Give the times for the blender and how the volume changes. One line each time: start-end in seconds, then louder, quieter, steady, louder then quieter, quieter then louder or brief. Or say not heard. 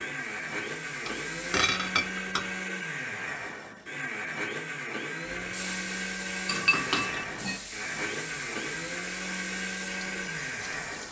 0.0-11.0 steady.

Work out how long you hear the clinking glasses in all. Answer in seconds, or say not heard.
3 s.